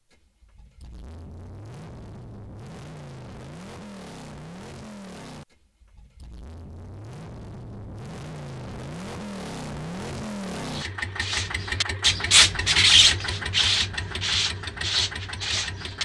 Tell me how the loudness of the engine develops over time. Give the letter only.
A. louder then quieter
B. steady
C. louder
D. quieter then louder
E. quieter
C.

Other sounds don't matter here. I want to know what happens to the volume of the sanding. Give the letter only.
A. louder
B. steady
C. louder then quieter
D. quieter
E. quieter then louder
C.